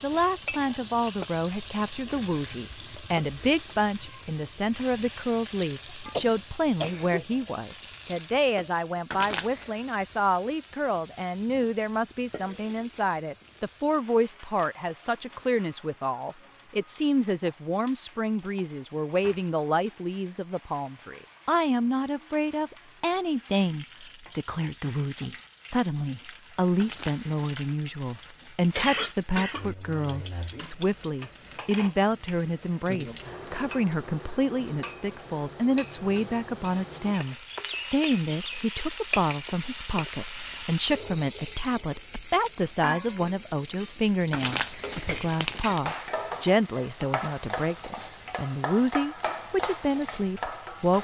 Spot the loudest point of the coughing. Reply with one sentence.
The loudest moment of the coughing is at 29 seconds.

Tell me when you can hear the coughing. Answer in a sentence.
You can hear the coughing from 6.2 to 7.2 s and from 28.7 to 30.5 s.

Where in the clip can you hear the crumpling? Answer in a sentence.
The crumpling can be heard from 9.1 to 9.7 s, from 26.8 to 27.3 s and from 44.3 to 45.8 s.